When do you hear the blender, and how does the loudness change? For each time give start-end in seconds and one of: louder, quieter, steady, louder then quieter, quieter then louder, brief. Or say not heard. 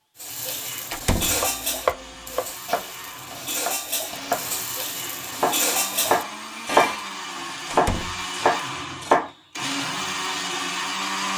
0.2-11.3 louder.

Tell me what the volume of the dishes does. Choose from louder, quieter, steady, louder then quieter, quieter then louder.
quieter then louder.